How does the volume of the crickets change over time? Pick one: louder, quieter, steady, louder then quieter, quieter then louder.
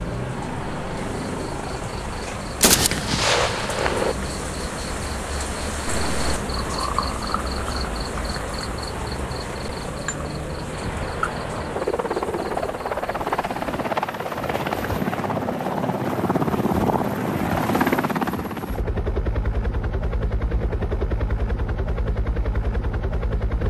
louder then quieter.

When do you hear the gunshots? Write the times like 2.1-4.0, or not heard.
2.6-4.2.